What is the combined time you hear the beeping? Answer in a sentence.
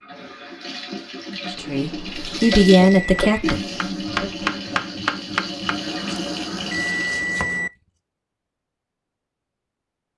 The beeping can be heard for 4 seconds in total.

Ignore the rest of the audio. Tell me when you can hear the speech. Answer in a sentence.
You can hear the speech from 1.5 to 4.5 s.